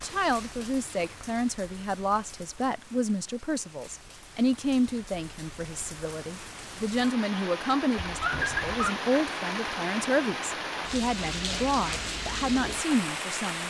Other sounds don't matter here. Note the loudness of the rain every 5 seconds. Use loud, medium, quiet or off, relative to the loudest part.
quiet, loud, loud.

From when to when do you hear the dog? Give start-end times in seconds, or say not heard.
8.1-8.9.